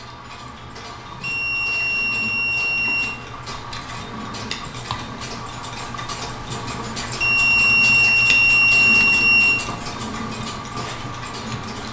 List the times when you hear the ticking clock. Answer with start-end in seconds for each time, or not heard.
0.0-11.8.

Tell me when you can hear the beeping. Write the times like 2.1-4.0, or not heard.
1.2-3.2, 7.2-9.6.